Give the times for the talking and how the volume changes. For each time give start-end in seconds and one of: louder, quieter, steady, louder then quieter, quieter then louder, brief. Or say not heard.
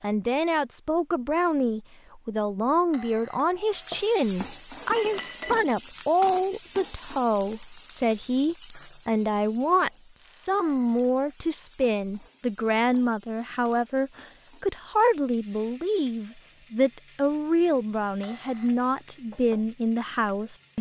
0.0-20.7 steady.